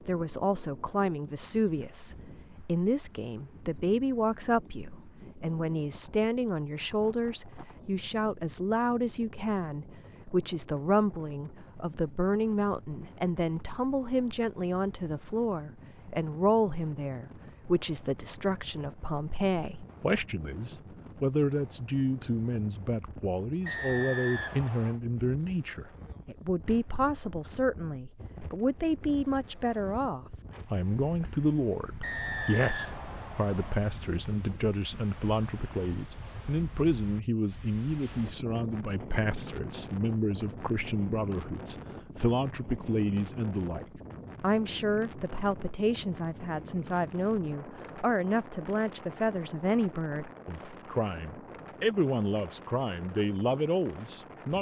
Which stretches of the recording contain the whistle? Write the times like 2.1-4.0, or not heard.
23.6-25.0, 32.0-33.8.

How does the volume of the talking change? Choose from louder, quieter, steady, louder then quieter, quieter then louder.
steady.